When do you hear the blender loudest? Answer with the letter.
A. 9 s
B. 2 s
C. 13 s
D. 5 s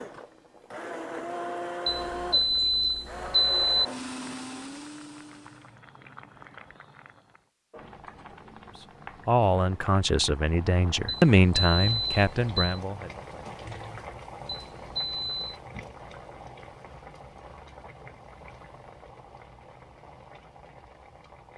B.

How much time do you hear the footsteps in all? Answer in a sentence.
You can't hear the footsteps here.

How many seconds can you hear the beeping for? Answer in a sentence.
The beeping can be heard for 5 seconds in total.